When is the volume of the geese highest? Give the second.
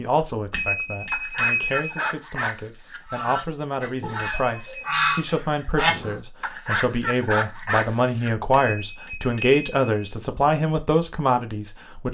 5 s.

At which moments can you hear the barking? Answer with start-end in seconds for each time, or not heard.
1.1-3.0, 6.4-8.3.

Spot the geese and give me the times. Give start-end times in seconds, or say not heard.
3.0-6.2.